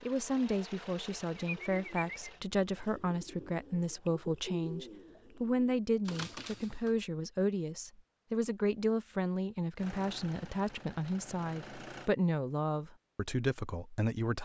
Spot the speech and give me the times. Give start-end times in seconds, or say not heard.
0.0-14.3.